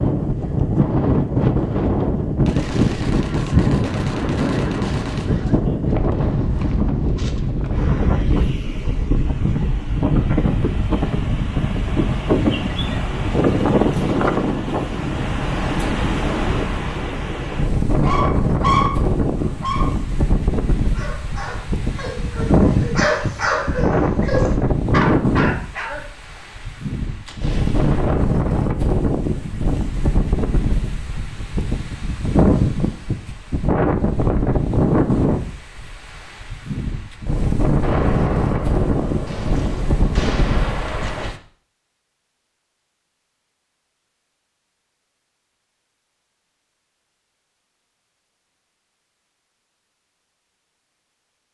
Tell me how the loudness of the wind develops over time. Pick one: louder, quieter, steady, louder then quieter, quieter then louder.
steady.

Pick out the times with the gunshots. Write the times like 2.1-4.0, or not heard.
2.5-5.5, 27.2-28.2, 37.8-41.4.